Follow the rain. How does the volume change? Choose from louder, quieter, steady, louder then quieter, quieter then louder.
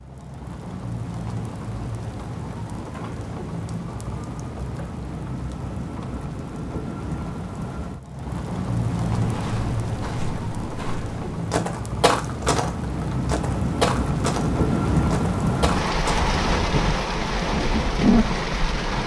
louder.